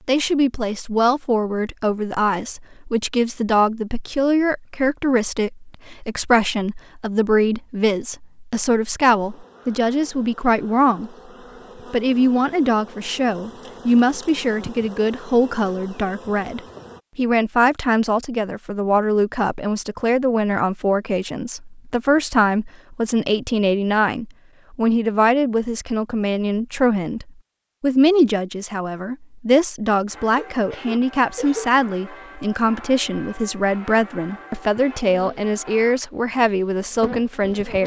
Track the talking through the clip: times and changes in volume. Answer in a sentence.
The talking can be heard from 0.1 to 11.1 s, at a steady volume; and from 11.9 to 37.8 s, at a steady volume.